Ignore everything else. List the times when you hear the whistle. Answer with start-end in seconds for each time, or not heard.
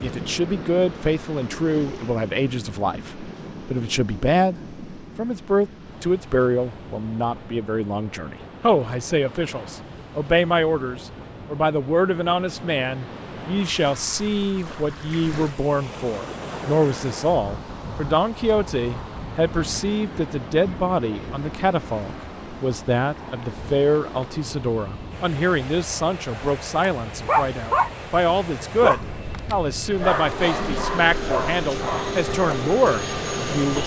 not heard.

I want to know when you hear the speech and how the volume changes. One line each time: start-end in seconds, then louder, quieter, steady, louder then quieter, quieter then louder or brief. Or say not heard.
0.0-33.8 steady.